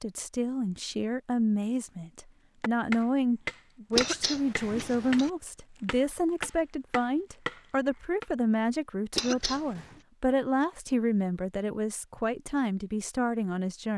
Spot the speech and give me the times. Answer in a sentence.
You can hear the speech from 0.0 to 13.9 s.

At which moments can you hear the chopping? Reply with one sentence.
You can hear the chopping from 2.6 to 8.2 s.